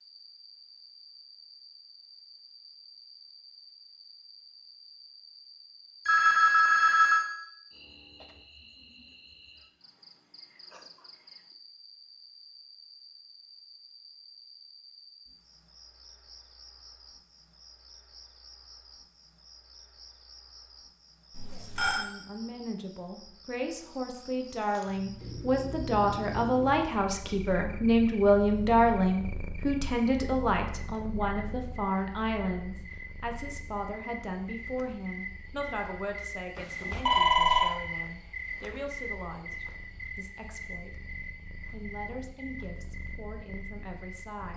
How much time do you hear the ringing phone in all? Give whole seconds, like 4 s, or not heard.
3 s.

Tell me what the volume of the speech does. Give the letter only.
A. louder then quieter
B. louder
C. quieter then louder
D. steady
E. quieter
A.